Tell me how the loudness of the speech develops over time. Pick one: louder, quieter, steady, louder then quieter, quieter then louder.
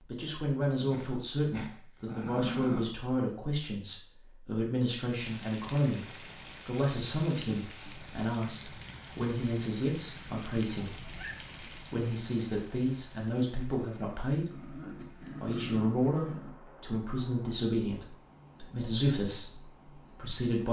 steady.